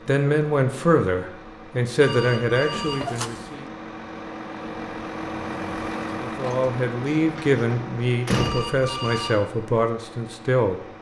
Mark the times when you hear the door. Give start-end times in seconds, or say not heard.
2.7-3.5, 7.0-8.7.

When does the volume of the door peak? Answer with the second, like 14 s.
8 s.